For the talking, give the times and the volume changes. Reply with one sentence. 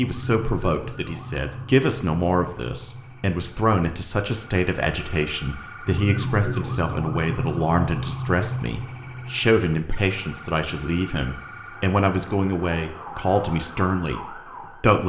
You can hear the talking from 0.0 to 15.0 s, at a steady volume.